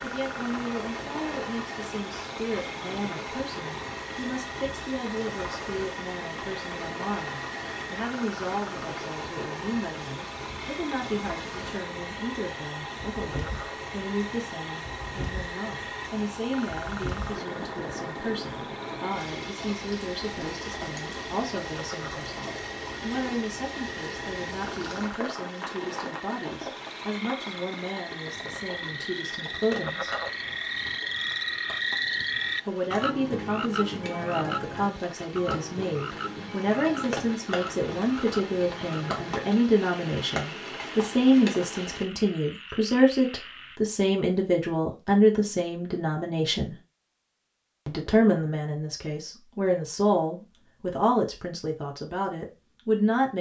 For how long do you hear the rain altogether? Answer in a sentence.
You can hear the rain for 42 seconds altogether.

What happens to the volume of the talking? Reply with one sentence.
The loudness of the talking goes up.